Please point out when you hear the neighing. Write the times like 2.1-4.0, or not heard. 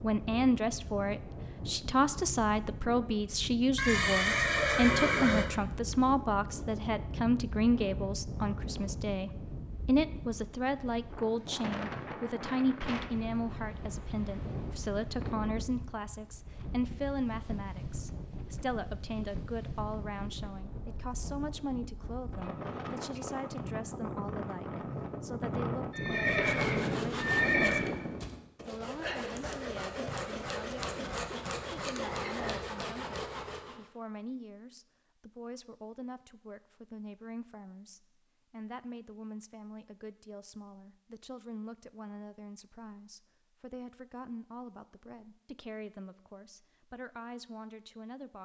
3.8-5.5, 25.9-27.9.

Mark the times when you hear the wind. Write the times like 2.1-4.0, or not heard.
0.0-28.5.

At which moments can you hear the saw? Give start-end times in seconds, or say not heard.
26.1-33.9.